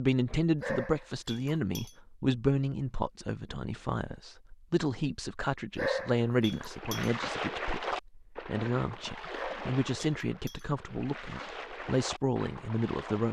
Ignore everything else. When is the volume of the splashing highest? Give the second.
8 s.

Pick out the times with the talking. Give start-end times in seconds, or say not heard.
0.0-13.2.